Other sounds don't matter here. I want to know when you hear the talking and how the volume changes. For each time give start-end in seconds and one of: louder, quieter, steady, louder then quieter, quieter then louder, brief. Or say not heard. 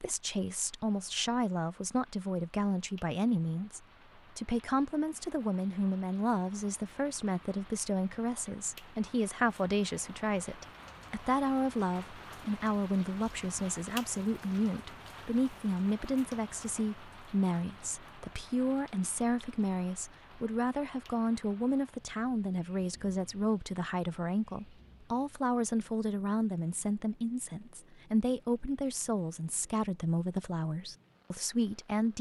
0.0-32.1 steady.